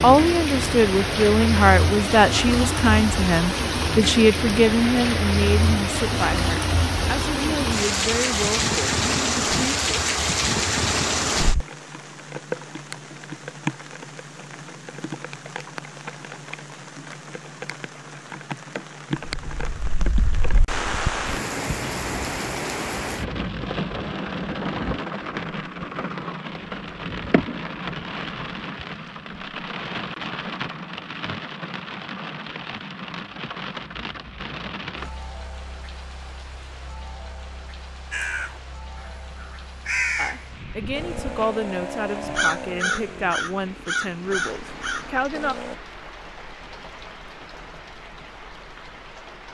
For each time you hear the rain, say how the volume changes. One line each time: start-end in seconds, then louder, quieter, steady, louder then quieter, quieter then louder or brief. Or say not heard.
0.0-49.4 quieter.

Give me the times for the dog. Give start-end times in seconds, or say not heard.
not heard.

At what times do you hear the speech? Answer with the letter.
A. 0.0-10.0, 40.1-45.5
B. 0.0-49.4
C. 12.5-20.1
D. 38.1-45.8
A.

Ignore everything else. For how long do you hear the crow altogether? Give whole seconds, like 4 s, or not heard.
8 s.